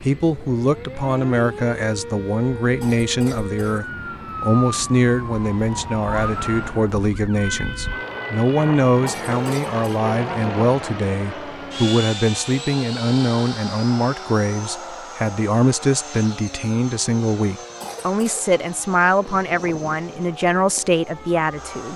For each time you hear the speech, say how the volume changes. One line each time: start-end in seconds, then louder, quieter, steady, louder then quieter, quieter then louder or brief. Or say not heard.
0.0-21.9 steady.